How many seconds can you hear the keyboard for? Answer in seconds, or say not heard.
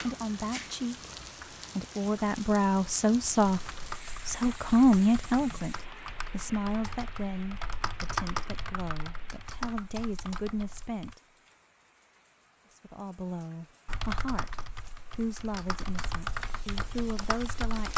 12 s.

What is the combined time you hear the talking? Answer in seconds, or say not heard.
15 s.